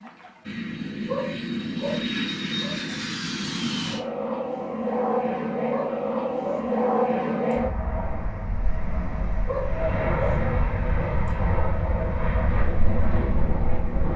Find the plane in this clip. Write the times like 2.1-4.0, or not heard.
0.0-14.1.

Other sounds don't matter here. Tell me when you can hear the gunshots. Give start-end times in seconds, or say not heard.
not heard.